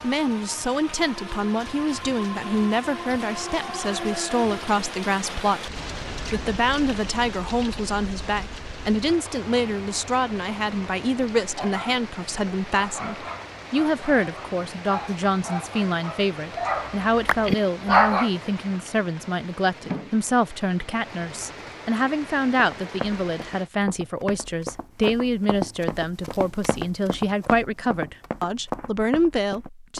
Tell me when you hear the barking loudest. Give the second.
18 s.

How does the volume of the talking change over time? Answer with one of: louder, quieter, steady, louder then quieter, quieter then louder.
steady.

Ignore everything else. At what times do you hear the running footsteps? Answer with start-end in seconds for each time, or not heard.
22.6-29.9.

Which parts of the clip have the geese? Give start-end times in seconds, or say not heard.
not heard.